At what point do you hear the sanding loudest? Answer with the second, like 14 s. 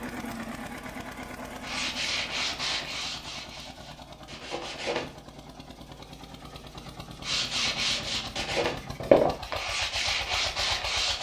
9 s.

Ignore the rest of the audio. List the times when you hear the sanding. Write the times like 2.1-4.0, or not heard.
1.6-5.1, 7.2-11.1.